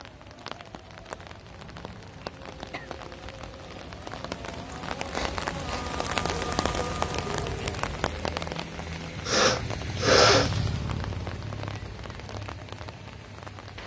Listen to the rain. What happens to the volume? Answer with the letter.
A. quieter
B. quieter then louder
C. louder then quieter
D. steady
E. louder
C.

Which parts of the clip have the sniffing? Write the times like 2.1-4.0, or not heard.
1.6-2.9, 4.7-5.9, 9.2-10.5.